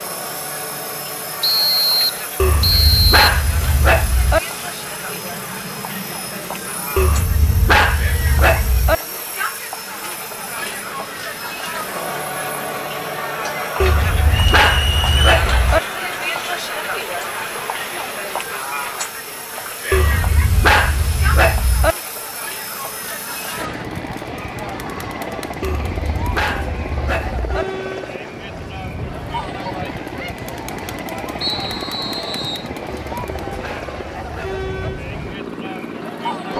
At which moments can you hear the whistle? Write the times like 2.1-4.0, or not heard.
1.4-3.3, 14.3-15.2, 31.4-32.6.